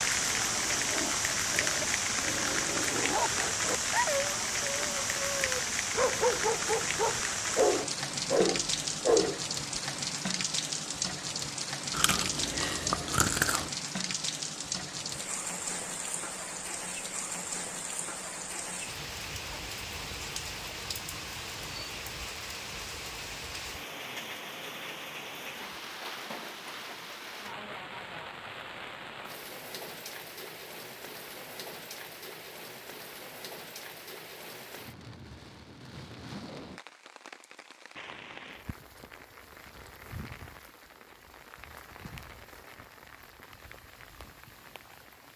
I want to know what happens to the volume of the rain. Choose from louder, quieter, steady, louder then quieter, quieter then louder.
quieter.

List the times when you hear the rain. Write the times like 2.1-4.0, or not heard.
0.0-45.3.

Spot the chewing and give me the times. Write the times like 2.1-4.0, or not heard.
11.9-13.7.